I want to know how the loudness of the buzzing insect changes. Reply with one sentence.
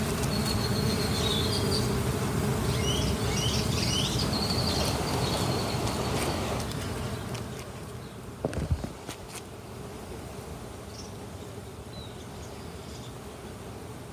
The volume of the buzzing insect goes down.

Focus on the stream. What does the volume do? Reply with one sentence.
The volume of the stream goes down.